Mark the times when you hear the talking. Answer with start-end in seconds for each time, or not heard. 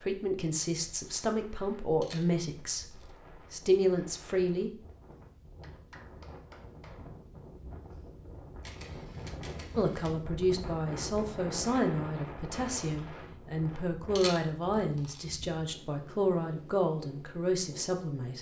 0.0-4.7, 9.8-18.3.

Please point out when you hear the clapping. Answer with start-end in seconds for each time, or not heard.
5.6-7.2.